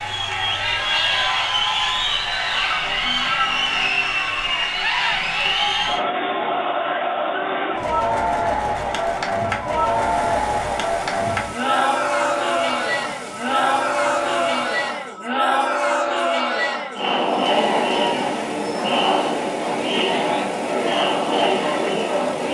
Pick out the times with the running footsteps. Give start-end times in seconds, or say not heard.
not heard.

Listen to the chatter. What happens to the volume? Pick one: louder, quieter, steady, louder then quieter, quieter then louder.
steady.